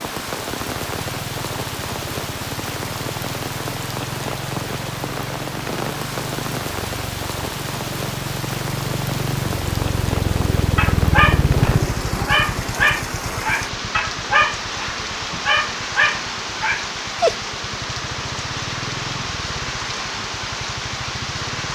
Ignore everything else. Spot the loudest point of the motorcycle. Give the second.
11 s.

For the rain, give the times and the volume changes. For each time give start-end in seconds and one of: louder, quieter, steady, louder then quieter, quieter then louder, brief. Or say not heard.
0.0-21.6 steady.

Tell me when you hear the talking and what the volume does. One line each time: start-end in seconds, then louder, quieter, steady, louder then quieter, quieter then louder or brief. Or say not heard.
not heard.